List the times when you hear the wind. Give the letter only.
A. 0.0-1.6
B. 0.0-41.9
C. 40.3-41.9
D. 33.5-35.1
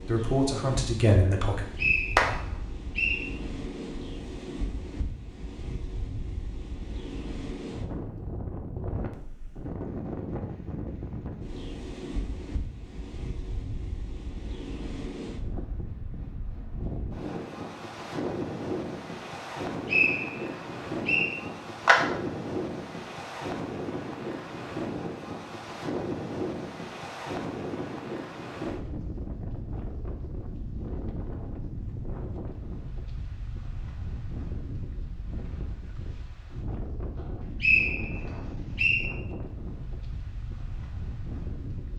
B.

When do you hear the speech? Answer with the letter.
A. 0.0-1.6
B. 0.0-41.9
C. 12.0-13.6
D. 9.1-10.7
A.